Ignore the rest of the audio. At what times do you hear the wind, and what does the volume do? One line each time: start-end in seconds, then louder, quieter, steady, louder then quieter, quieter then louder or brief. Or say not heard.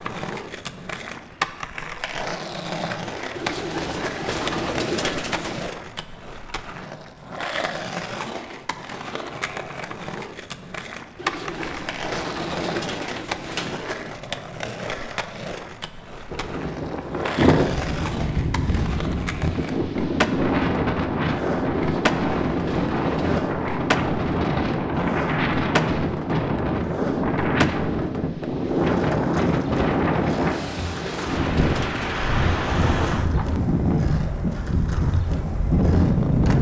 16.3-36.5 steady.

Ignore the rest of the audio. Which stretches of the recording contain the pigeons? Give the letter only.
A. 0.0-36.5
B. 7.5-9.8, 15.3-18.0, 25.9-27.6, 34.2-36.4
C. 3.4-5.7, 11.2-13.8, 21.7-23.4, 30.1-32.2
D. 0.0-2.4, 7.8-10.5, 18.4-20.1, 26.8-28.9
C.